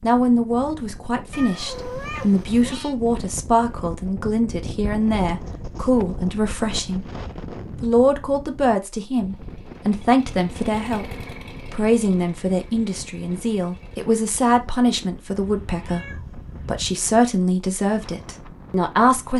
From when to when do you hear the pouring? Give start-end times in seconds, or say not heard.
not heard.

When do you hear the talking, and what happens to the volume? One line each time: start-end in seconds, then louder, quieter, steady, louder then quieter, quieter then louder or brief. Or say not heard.
0.0-7.0 steady
7.8-16.1 steady
16.6-19.3 brief.